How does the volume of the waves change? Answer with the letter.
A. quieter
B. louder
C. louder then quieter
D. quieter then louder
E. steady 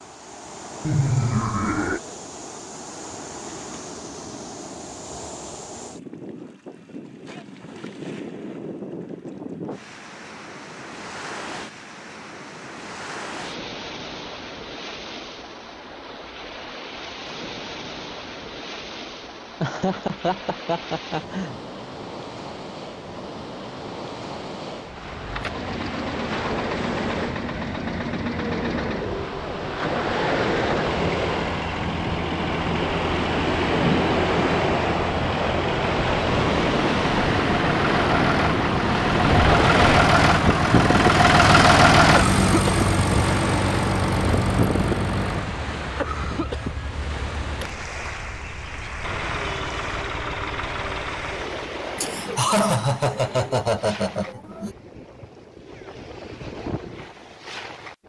C.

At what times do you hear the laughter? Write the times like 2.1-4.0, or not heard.
0.8-2.0, 19.6-21.6, 52.0-54.8.